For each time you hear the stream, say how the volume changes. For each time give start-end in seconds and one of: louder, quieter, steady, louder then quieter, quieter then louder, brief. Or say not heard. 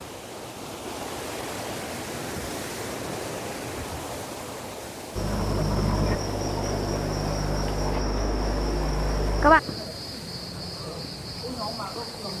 0.0-12.3 quieter.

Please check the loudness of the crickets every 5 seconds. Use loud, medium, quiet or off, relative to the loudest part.
off, loud, medium.